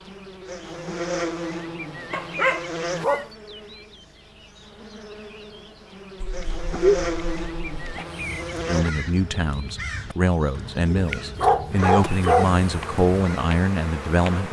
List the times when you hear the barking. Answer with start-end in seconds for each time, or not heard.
2.1-3.2, 6.2-8.1, 10.9-12.6.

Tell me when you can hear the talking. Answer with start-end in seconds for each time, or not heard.
8.7-14.4.